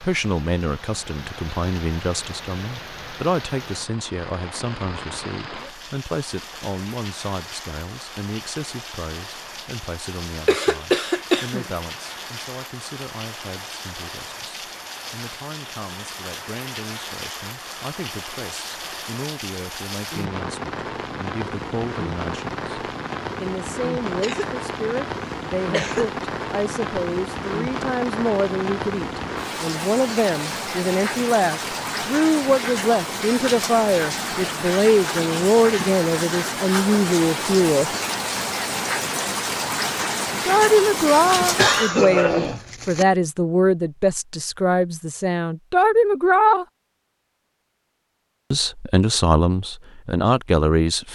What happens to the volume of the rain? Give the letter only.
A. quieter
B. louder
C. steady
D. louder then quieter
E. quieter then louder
B.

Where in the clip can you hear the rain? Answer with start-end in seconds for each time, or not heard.
0.0-41.9.